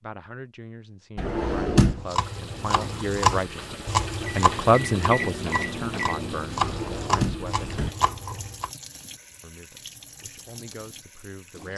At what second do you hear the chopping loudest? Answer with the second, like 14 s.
3 s.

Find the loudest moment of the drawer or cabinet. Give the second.
2 s.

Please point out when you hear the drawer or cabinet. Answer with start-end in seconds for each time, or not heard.
1.1-2.0, 6.6-7.9.